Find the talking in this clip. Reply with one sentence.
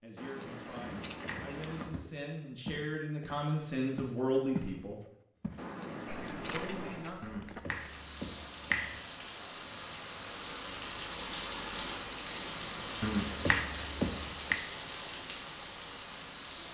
The talking can be heard from 0.0 to 5.0 s and from 6.5 to 7.4 s.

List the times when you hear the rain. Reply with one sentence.
You can hear the rain from 7.7 to 16.6 s.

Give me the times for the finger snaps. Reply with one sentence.
The finger snaps can be heard from 0.8 to 1.9 s, from 7.2 to 9.0 s and from 13.0 to 14.6 s.